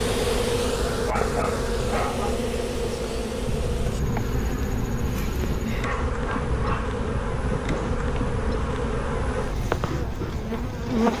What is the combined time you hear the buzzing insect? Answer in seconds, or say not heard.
11 s.